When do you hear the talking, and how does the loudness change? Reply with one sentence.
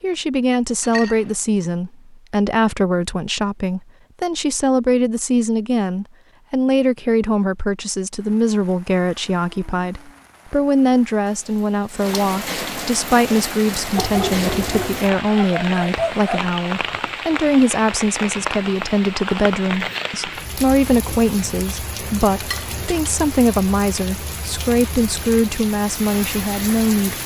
You can hear the talking from 0.0 to 27.2 s, at a steady volume.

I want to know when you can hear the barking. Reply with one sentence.
You can hear the barking from 13.9 to 16.4 s.